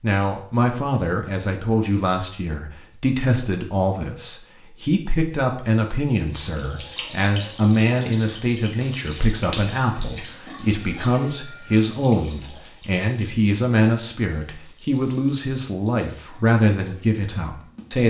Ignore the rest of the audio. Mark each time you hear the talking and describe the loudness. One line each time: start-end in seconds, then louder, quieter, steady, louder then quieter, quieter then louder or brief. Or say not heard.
0.0-18.0 steady.